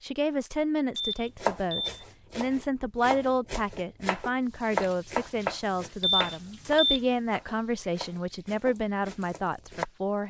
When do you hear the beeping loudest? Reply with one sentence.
The loudest moment of the beeping is at 6 seconds.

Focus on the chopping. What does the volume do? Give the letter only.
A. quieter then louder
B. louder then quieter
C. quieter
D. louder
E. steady
B.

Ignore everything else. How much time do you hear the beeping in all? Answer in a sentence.
The beeping can be heard for 2 seconds in total.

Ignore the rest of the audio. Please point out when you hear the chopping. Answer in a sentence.
The chopping can be heard from 1.4 to 9.8 s.